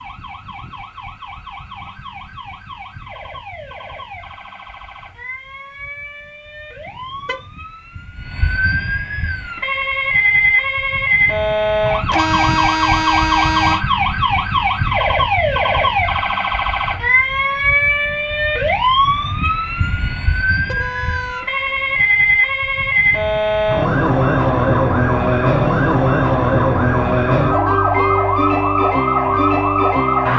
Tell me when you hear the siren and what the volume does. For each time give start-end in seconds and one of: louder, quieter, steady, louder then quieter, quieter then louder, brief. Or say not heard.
0.0-30.3 louder.